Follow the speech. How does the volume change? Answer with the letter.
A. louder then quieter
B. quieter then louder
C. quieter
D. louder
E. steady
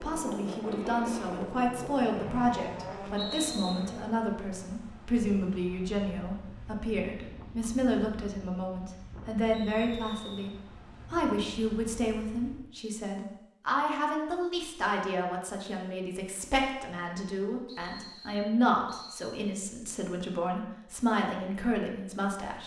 E.